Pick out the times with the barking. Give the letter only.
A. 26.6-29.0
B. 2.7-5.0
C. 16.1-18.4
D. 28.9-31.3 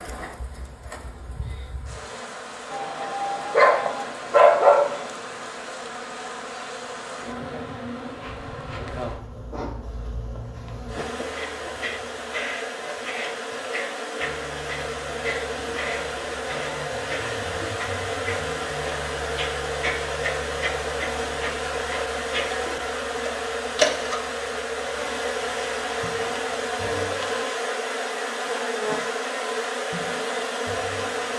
B.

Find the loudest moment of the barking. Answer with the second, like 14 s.
5 s.